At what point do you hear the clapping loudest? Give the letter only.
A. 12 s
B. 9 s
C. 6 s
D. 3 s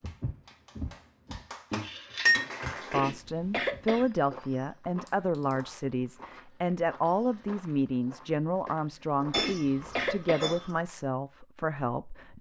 D.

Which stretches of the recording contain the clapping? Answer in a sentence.
You can hear the clapping from 0.0 to 3.0 s.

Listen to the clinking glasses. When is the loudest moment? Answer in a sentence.
The volume of the clinking glasses peaks at 2 seconds.